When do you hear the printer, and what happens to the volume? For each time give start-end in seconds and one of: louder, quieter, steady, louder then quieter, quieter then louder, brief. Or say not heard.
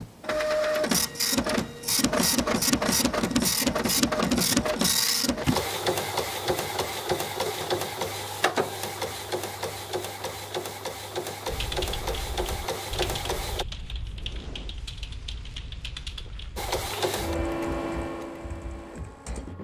0.0-13.7 quieter
16.6-19.5 brief.